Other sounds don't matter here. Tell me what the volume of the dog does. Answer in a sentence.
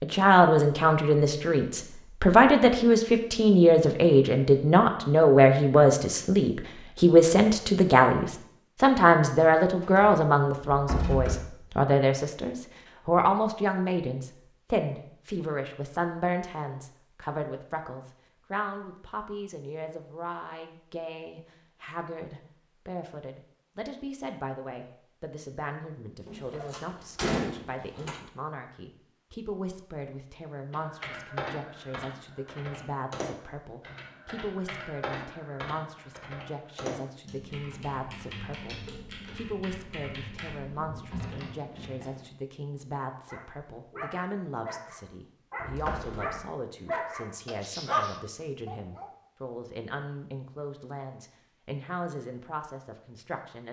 The volume of the dog goes up.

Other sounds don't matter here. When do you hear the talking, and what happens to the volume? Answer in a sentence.
You can hear the talking from 0.0 to 53.6 s, getting quieter.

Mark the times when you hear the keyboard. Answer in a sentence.
The keyboard can be heard from 30.7 to 42.2 s.